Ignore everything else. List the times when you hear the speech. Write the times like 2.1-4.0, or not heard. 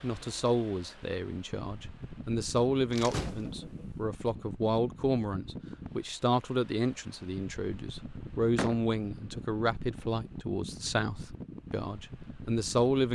0.0-13.1.